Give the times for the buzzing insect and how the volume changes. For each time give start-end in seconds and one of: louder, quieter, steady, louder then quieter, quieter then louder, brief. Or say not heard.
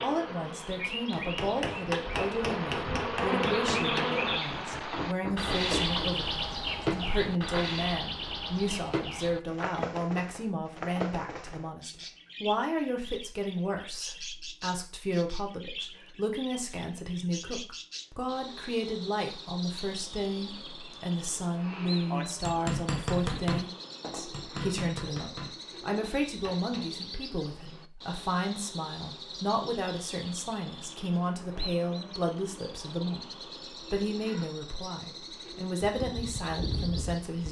0.0-4.4 louder
35.8-37.4 brief.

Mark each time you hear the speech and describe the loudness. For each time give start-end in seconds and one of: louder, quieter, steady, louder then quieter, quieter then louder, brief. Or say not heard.
0.0-37.4 steady.